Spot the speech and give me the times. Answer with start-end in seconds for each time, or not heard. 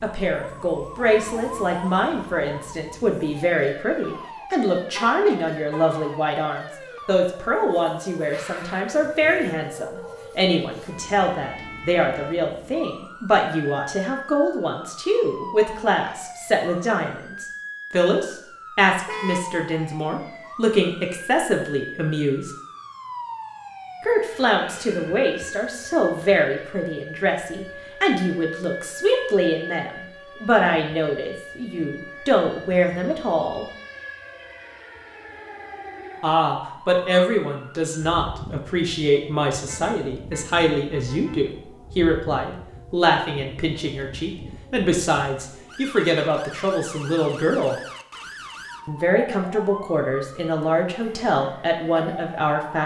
0.0-22.5, 24.0-33.6, 36.2-47.8, 48.9-52.8.